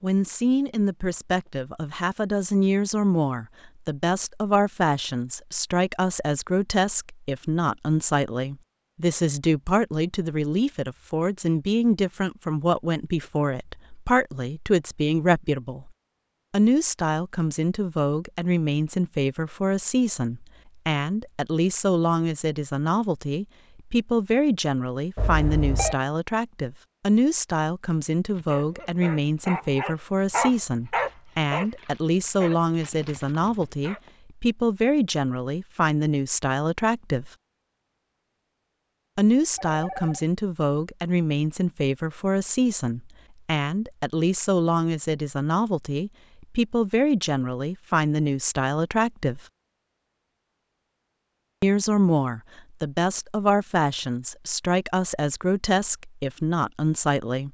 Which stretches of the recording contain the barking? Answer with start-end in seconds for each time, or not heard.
28.2-34.1.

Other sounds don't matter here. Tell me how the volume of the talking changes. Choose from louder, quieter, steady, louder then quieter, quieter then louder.
steady.